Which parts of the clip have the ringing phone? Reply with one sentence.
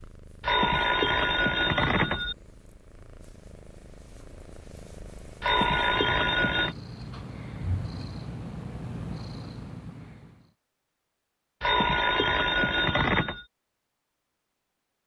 You can hear the ringing phone from 0.4 to 2.4 s, from 5.4 to 6.8 s and from 11.6 to 13.4 s.